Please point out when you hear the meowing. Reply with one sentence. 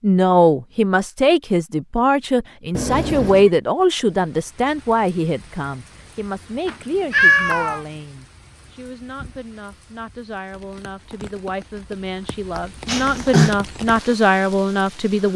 You can hear the meowing from 2.8 to 3.5 s, from 6.7 to 7.8 s and from 12.8 to 13.6 s.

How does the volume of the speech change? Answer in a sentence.
The loudness of the speech goes down, then up.